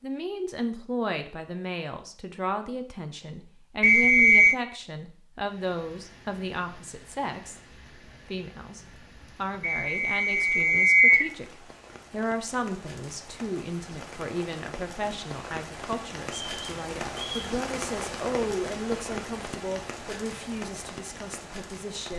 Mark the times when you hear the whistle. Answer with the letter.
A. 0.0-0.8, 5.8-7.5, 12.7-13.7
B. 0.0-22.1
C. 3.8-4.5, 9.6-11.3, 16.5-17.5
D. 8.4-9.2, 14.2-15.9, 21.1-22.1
C.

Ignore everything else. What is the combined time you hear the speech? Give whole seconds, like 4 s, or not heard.
22 s.